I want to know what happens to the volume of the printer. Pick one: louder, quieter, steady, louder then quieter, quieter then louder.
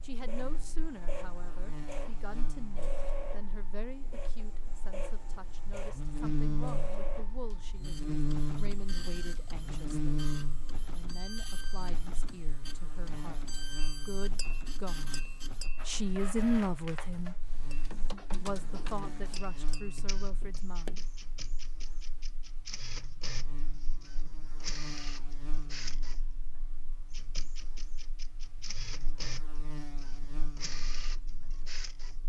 steady.